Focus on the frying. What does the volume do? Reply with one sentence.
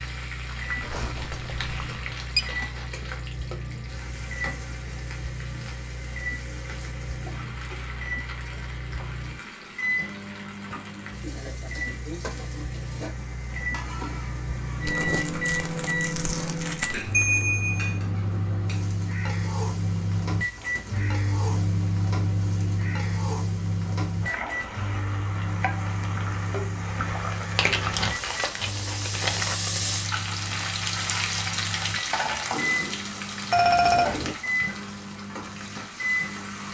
The loudness of the frying goes up.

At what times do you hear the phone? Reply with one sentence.
The phone can be heard from 0.8 to 2.5 s, from 17.1 to 18.0 s and from 33.5 to 34.4 s.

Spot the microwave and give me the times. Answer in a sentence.
The microwave can be heard from 0.0 to 36.6 s.